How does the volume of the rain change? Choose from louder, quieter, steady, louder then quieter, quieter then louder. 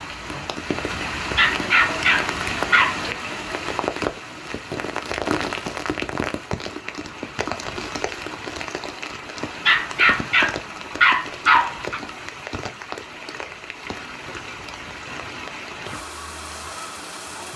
quieter.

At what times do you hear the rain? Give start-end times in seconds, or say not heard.
0.0-17.5.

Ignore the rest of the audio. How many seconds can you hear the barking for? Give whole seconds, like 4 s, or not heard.
4 s.